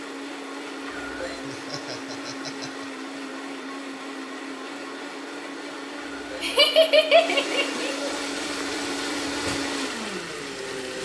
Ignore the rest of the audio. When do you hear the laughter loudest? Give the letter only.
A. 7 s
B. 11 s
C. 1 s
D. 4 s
A.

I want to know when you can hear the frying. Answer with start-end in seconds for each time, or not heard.
8.2-11.0.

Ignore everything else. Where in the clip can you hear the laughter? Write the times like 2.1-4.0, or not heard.
1.4-2.9, 6.4-8.1.